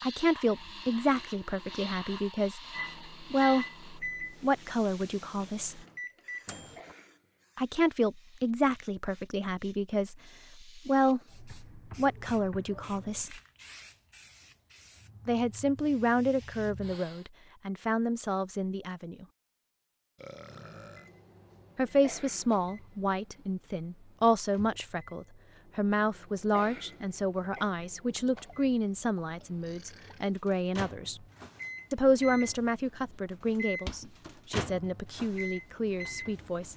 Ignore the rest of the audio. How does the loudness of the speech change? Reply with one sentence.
The loudness of the speech stays about the same.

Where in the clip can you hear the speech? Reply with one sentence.
The speech can be heard from 0.0 to 5.8 s, from 7.5 to 13.3 s, from 15.2 to 19.2 s, from 21.8 to 31.2 s and from 31.9 to 36.7 s.